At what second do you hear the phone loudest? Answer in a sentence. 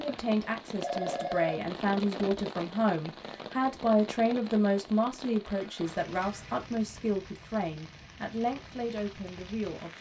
The volume of the phone peaks at 1 second.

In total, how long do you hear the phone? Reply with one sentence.
The phone can be heard for 2 seconds in total.